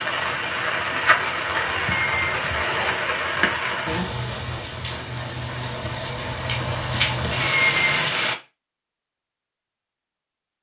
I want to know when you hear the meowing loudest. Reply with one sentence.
The volume of the meowing peaks at 8 seconds.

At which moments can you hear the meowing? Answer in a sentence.
You can hear the meowing from 1.9 to 2.5 s and from 7.4 to 8.2 s.